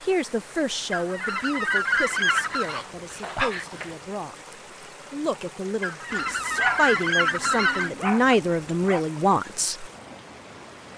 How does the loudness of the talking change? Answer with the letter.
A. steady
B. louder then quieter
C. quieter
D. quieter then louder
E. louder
D.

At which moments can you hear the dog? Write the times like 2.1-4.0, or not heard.
2.5-4.0, 6.1-9.1.